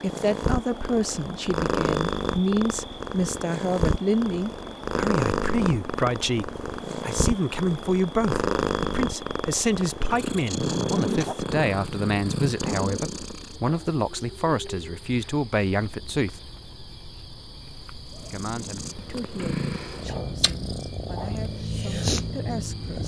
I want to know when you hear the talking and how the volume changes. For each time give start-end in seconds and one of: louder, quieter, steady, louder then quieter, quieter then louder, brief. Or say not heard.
0.0-16.4 steady
18.3-23.0 quieter then louder.